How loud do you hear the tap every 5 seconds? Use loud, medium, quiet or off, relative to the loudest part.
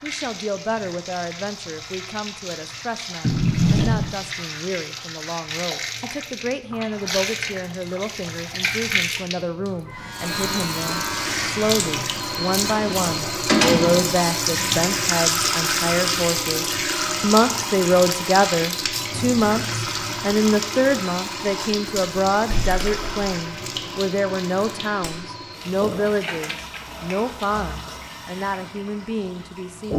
medium, medium, loud, loud, medium, medium.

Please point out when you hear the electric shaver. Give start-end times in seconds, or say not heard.
9.9-12.1.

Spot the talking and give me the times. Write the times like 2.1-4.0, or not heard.
0.0-29.9.